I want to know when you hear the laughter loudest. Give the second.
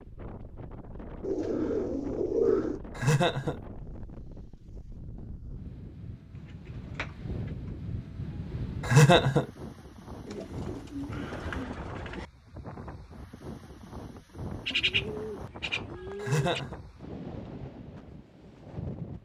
9 s.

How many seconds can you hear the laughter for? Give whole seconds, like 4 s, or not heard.
2 s.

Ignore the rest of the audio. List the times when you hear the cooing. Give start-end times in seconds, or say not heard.
1.2-2.8, 6.5-7.5, 10.2-12.2, 14.7-16.6.